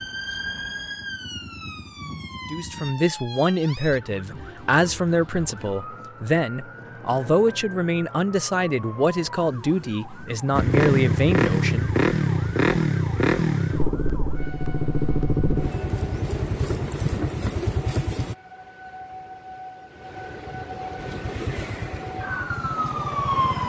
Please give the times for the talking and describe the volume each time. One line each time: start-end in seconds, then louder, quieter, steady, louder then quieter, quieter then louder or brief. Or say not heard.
2.5-11.9 steady.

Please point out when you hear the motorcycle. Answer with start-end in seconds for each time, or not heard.
0.0-2.9, 10.5-18.4, 20.9-23.6.